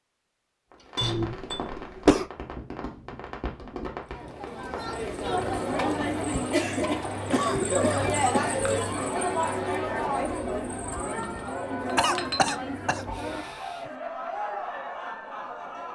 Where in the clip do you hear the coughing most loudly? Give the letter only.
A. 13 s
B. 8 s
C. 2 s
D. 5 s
C.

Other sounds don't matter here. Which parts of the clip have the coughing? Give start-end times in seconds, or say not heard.
1.0-2.2, 7.3-8.6, 11.9-13.6.